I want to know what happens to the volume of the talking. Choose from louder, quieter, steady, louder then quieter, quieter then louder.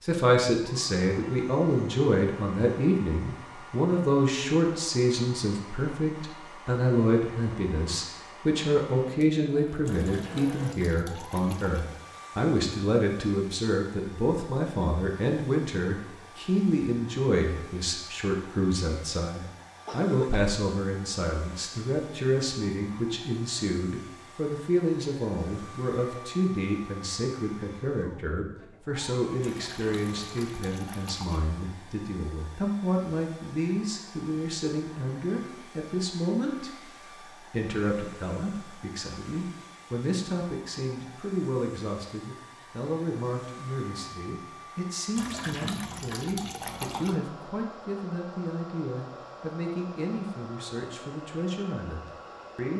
quieter.